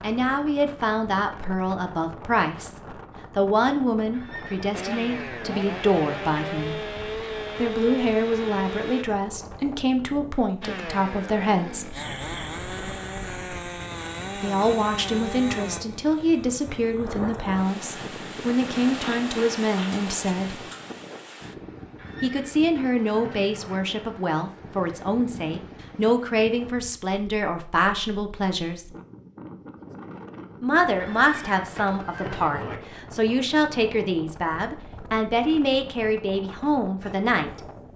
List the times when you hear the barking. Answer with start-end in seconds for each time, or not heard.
not heard.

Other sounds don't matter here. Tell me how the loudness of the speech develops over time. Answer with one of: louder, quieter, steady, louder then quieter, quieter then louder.
steady.